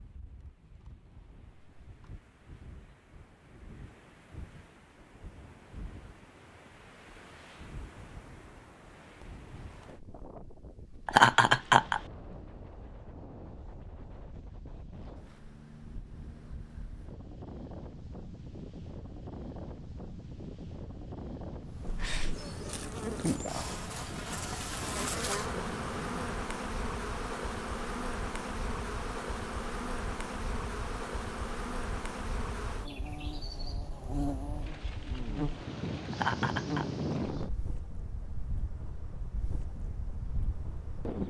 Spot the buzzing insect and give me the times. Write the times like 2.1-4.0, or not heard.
21.6-41.1.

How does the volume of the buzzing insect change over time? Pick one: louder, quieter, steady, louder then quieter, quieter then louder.
quieter.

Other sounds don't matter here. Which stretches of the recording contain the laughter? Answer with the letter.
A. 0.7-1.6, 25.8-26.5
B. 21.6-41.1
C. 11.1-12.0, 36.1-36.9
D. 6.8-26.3
C.